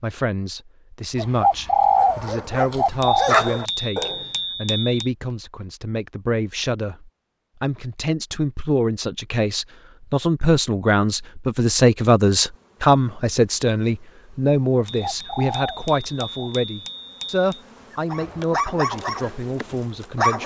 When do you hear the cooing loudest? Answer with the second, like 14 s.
2 s.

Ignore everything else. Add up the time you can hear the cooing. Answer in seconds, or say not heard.
4 s.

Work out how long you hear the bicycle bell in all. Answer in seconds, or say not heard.
5 s.